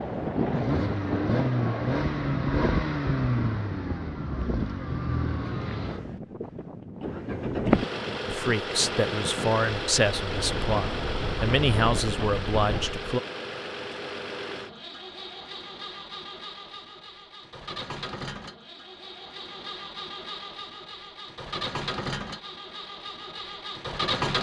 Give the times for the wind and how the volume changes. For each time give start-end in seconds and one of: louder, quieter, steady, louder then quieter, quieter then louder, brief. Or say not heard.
0.0-13.1 quieter then louder.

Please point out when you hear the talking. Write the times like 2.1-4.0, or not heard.
8.2-13.2.